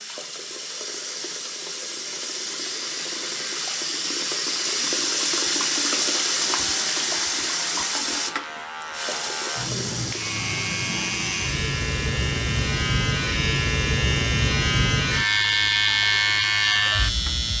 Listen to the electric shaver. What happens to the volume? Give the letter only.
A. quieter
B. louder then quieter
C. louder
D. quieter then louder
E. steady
C.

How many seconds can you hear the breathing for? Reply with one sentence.
You can't hear the breathing here.